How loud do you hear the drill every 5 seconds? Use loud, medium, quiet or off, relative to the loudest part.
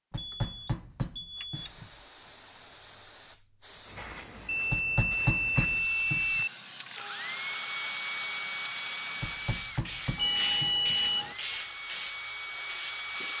off, loud, loud.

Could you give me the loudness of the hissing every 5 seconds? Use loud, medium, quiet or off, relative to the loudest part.
medium, medium, loud.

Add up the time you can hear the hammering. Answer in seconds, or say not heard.
5 s.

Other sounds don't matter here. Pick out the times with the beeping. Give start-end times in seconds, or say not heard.
0.1-1.7, 4.5-6.5, 10.2-11.3.